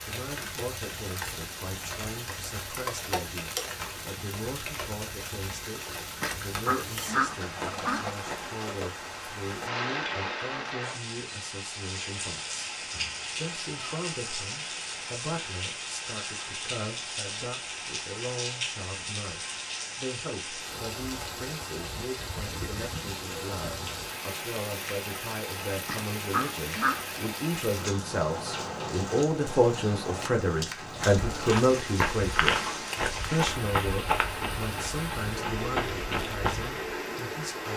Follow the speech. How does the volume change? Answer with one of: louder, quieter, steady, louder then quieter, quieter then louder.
louder.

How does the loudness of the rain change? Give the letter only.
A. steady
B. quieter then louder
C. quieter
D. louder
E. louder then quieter
A.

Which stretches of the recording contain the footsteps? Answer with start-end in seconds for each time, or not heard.
30.6-36.9.